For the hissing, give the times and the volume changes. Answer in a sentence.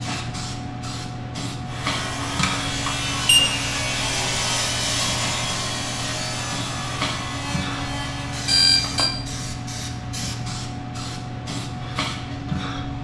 You can hear the hissing from 0.0 to 12.9 s, at a steady volume.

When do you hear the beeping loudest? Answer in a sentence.
The volume of the beeping peaks at 9 seconds.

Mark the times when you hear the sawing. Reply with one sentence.
You can hear the sawing from 1.6 to 8.7 s.